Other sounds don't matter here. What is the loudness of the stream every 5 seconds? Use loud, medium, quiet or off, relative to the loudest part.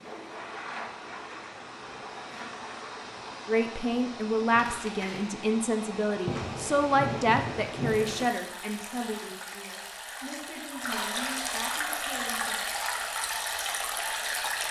medium, medium, loud.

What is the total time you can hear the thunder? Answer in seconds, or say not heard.
2 s.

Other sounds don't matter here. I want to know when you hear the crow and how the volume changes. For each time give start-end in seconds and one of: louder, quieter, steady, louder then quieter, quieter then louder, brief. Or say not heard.
not heard.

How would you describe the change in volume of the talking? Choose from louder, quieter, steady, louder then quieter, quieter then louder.
quieter.